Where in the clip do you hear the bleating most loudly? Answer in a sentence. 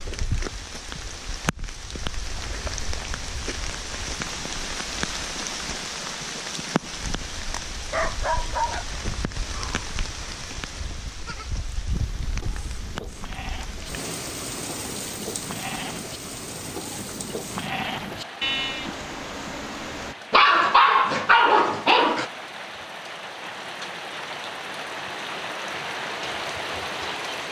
The volume of the bleating peaks at 19 seconds.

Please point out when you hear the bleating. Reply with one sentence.
You can hear the bleating from 11.2 to 20.1 s.